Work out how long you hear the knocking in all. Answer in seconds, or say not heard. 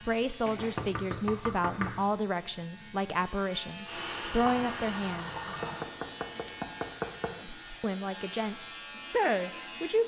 3 s.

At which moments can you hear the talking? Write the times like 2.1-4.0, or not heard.
0.1-5.5, 7.3-10.0.